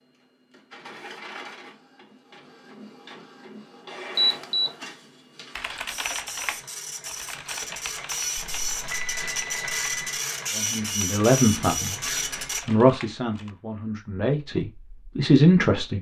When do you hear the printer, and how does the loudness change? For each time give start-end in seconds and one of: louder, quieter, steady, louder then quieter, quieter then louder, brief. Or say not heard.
0.0-12.6 louder.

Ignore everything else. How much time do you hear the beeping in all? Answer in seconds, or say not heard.
2 s.